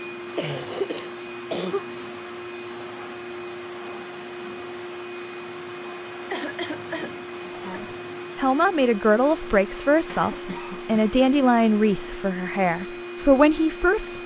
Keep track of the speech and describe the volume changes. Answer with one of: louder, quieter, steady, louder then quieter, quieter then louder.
steady.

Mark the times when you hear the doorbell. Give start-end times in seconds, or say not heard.
not heard.